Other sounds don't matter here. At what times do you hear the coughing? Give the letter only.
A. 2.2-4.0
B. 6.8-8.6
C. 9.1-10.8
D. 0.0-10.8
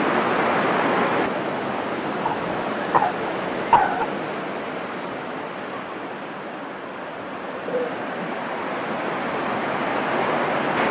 A.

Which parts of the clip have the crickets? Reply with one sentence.
The crickets can't be heard in this clip.